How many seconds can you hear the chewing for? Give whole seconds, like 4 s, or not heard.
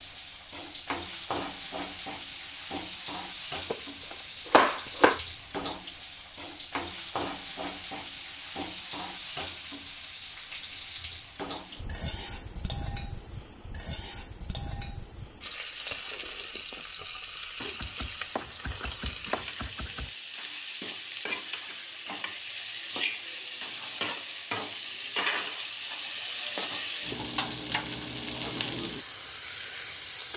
not heard.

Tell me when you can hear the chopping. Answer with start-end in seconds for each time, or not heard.
3.7-5.2, 17.6-20.1.